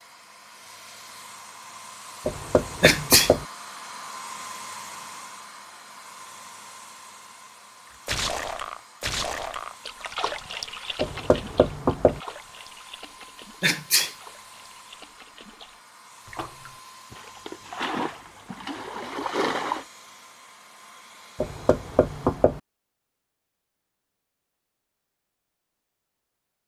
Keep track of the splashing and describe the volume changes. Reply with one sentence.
The volume of the splashing goes down, then up.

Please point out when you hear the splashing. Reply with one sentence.
You can hear the splashing from 8.1 to 19.9 s.